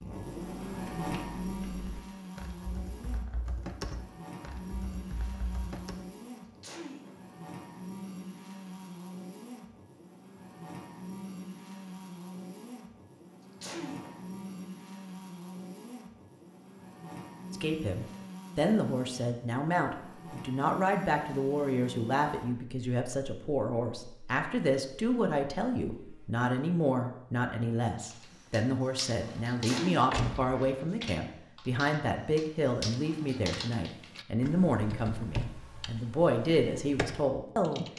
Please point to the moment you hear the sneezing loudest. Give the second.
30 s.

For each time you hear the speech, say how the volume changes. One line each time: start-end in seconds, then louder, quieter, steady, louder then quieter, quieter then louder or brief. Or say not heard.
17.5-37.9 steady.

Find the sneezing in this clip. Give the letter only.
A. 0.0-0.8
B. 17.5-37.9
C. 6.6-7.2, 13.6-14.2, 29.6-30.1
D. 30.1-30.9
C.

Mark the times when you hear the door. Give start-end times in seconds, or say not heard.
30.1-30.9.